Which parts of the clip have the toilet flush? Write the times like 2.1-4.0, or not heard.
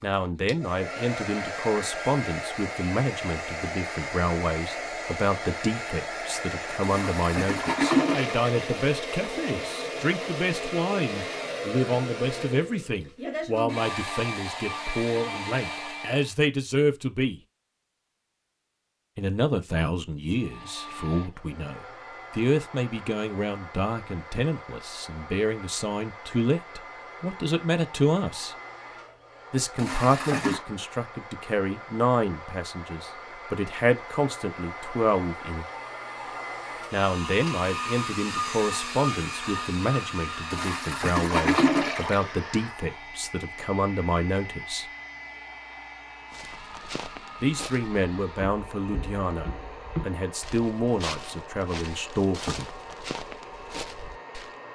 6.8-8.6, 29.8-30.6, 40.5-42.4.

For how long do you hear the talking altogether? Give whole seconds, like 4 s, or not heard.
46 s.